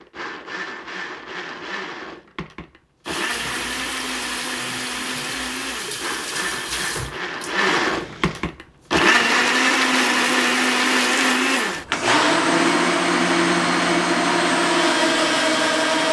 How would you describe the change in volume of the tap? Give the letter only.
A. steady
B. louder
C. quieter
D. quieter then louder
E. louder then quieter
C.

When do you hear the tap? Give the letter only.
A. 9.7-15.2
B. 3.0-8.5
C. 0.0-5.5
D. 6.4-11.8
B.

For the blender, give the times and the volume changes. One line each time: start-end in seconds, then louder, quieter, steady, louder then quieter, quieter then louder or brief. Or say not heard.
0.0-16.0 louder.